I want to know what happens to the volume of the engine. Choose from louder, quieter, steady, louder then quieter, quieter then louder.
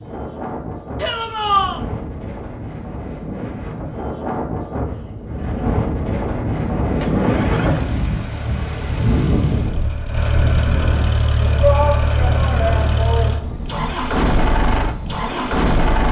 louder.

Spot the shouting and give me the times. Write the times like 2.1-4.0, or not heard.
0.9-1.8, 11.6-13.7.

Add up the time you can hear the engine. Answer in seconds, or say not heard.
9 s.